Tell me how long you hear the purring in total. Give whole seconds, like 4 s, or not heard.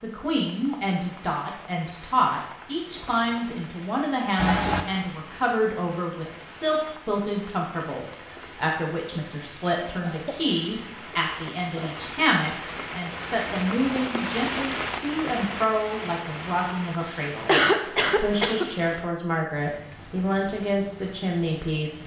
not heard.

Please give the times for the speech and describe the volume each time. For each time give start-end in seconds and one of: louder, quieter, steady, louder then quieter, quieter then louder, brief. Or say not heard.
0.0-22.0 steady.